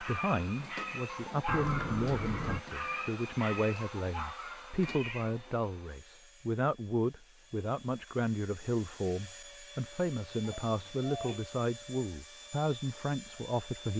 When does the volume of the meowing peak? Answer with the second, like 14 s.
2 s.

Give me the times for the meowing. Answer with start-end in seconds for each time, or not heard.
1.4-2.6, 4.8-5.5, 10.4-11.4.